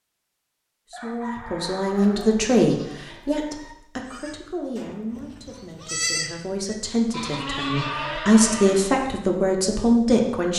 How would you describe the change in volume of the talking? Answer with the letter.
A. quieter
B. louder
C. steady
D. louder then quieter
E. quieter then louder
E.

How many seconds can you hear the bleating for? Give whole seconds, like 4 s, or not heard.
7 s.